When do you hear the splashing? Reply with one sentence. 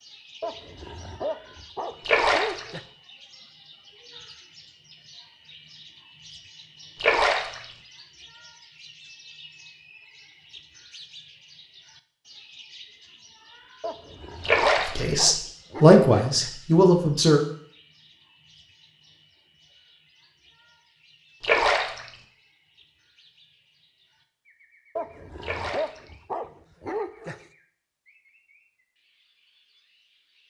You can hear the splashing from 2.0 to 2.7 s, from 7.0 to 7.7 s, from 14.4 to 15.1 s, from 21.4 to 22.1 s and from 25.4 to 26.0 s.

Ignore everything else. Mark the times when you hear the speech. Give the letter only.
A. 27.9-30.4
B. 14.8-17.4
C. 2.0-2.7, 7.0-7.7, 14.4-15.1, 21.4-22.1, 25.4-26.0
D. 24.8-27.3
B.